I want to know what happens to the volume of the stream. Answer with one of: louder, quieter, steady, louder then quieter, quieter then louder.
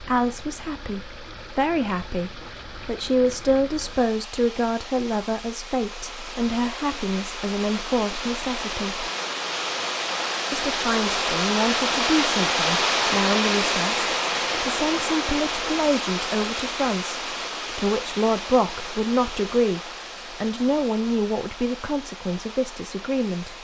louder then quieter.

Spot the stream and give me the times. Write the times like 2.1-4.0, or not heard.
0.0-23.5.